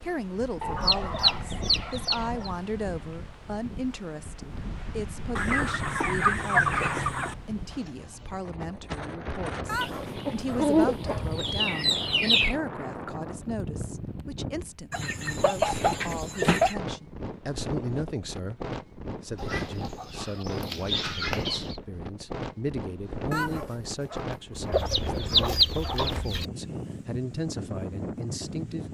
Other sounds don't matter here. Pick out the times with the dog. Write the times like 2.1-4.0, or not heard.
9.7-11.3, 23.3-26.1.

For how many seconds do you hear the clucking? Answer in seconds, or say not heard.
13 s.